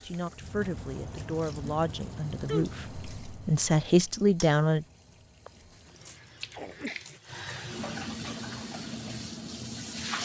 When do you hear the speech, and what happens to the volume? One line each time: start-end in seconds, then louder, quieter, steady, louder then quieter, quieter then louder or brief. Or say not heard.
0.0-4.8 louder.